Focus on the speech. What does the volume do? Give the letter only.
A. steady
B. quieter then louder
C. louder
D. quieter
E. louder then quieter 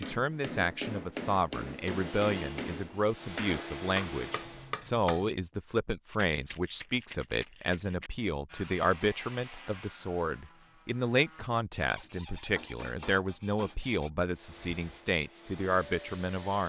A.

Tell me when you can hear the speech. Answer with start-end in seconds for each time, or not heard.
0.0-16.6.